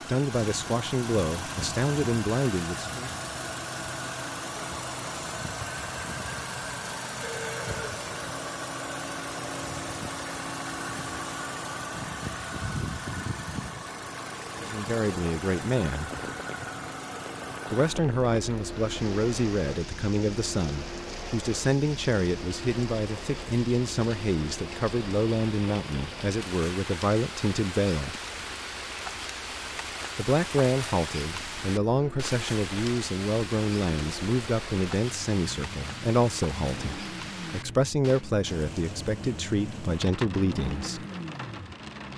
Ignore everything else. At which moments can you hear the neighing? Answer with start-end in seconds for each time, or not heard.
7.2-8.0.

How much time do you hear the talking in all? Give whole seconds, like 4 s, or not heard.
26 s.